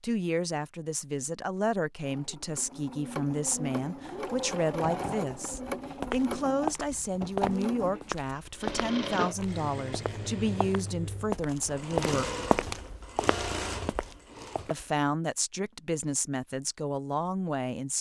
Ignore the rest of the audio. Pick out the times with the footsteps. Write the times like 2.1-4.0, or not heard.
5.3-14.8.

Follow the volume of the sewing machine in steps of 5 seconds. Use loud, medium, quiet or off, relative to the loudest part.
loud, loud, loud, off.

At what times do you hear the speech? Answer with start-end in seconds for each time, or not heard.
0.0-12.3, 14.7-17.9.